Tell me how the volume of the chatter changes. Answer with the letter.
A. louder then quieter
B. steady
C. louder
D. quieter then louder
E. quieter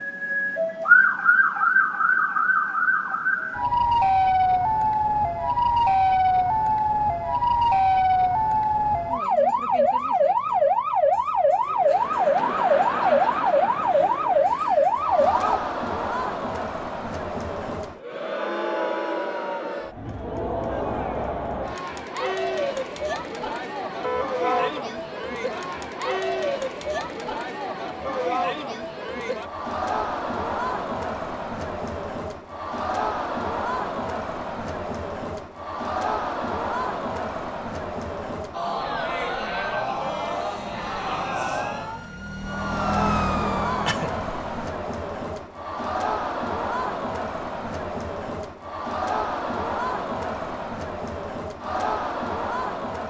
B.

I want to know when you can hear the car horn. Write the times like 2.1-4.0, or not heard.
24.0-24.9.